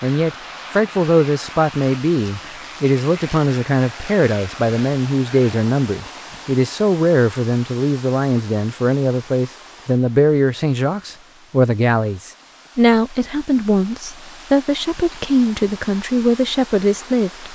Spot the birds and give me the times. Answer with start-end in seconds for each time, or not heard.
not heard.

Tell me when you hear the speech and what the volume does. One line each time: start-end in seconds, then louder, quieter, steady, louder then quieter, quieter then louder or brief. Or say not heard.
0.0-17.5 steady.